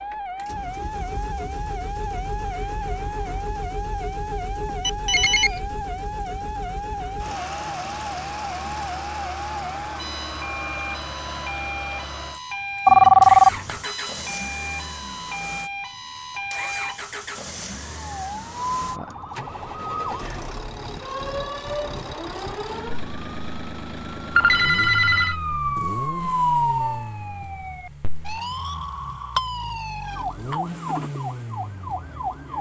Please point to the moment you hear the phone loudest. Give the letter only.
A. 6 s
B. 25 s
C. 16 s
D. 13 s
D.